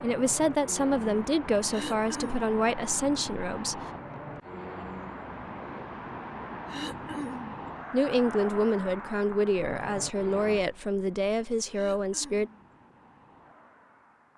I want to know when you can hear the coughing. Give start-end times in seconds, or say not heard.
1.7-2.5, 6.7-7.5, 11.7-12.7.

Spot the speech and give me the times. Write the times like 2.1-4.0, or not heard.
0.0-3.9, 7.9-12.5.